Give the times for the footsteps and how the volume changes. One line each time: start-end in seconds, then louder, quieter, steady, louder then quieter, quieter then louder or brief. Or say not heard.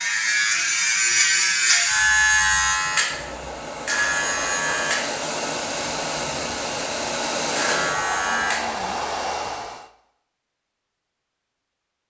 not heard.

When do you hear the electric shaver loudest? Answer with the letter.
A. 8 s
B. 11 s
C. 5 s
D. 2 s
D.